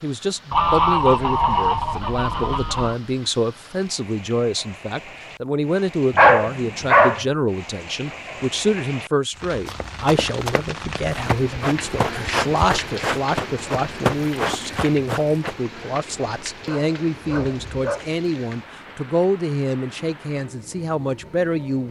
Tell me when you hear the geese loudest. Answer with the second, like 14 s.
1 s.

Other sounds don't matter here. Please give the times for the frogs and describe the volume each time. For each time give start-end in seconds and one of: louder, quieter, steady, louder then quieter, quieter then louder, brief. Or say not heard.
not heard.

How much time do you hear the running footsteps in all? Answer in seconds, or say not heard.
6 s.